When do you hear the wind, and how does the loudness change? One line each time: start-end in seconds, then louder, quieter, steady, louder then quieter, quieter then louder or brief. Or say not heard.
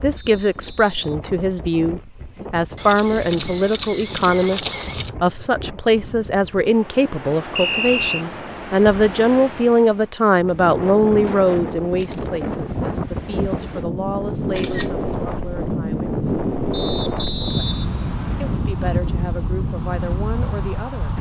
0.0-21.1 louder.